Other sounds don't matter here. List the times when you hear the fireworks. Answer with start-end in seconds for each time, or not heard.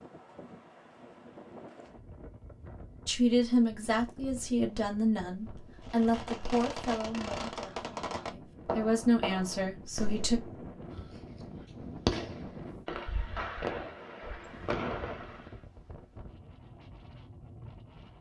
5.8-15.6.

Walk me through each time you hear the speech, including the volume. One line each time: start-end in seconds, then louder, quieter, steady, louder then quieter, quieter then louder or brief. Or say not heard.
3.0-10.4 quieter then louder.